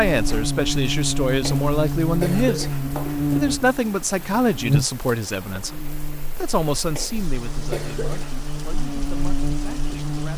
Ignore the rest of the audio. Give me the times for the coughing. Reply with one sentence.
You can hear the coughing from 1.4 to 3.3 s and from 7.0 to 8.4 s.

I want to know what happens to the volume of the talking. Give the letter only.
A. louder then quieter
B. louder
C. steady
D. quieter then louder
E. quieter
E.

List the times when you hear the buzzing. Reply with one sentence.
The buzzing can be heard from 0.0 to 10.3 s.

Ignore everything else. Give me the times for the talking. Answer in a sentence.
The talking can be heard from 0.0 to 10.3 s.